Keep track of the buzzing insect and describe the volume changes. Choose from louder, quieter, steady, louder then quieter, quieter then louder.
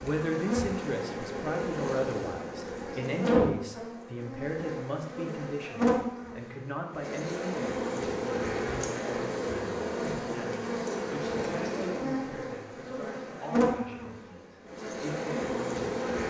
steady.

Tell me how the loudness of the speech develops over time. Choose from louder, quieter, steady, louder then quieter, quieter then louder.
quieter.